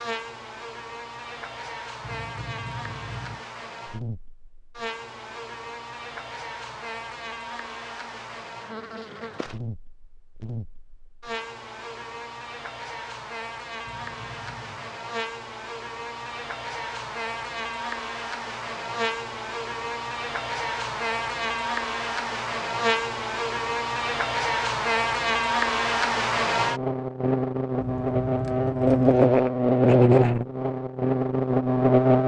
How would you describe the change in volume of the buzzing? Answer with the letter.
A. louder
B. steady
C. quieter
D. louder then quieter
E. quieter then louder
A.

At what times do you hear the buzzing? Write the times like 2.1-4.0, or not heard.
0.0-32.2.